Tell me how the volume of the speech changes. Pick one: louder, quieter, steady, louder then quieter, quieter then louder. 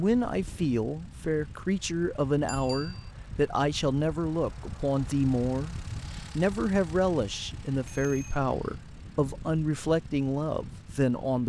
steady.